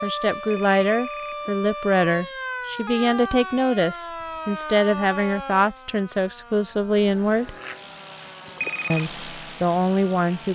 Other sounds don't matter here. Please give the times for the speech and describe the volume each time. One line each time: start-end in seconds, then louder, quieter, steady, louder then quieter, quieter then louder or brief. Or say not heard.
0.0-7.5 steady
8.9-10.5 brief.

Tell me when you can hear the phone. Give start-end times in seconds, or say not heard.
0.3-2.2, 8.4-9.1.